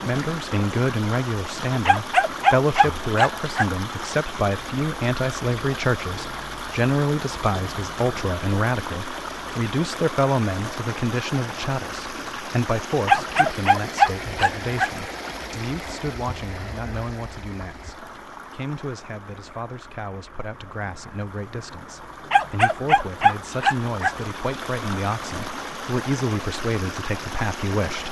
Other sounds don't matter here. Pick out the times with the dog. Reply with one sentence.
The dog can be heard from 1.9 to 3.7 s, from 13.1 to 14.9 s and from 22.3 to 24.1 s.